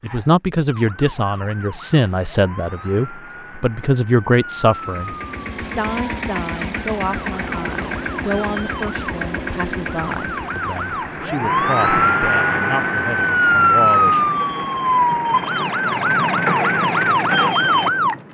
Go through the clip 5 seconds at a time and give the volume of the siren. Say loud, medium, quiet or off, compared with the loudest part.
quiet, quiet, loud, loud.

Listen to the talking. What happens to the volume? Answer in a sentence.
The loudness of the talking goes down.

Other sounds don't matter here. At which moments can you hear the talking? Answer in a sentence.
You can hear the talking from 0.0 to 14.3 s.